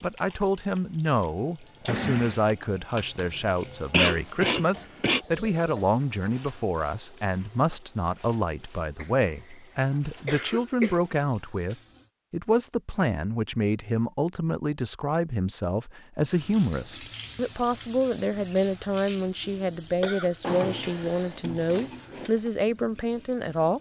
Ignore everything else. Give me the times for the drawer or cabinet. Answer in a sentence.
The drawer or cabinet can be heard from 1.9 to 2.5 s and from 20.4 to 22.3 s.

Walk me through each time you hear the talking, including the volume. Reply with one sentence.
The talking can be heard from 0.0 to 23.7 s, at a steady volume.